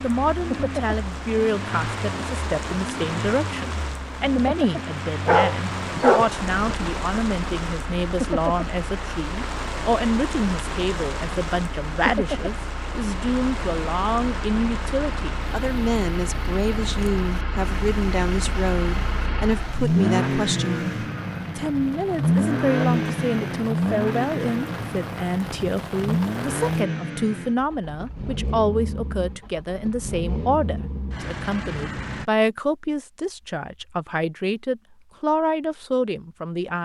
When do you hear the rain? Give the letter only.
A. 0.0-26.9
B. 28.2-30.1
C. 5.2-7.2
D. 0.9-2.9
A.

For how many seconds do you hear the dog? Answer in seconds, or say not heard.
2 s.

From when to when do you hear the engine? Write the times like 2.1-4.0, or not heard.
0.0-32.2.